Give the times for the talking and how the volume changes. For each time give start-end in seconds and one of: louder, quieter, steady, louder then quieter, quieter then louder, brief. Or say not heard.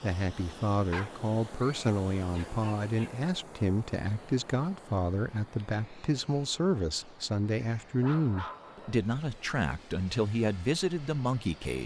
0.0-11.8 steady.